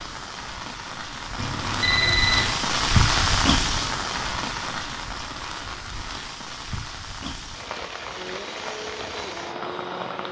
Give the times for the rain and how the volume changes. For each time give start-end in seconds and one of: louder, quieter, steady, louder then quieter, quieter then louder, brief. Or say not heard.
0.0-10.2 louder then quieter.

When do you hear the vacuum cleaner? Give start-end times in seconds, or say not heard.
8.1-10.2.